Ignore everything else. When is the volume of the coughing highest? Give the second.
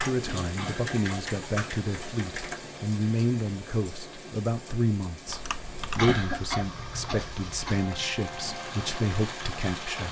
6 s.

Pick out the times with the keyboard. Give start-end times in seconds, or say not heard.
0.0-2.5, 5.2-7.2.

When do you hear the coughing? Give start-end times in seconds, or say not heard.
0.6-1.0, 6.0-8.1.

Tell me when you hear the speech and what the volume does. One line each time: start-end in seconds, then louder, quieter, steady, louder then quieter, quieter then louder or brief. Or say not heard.
0.0-10.0 steady.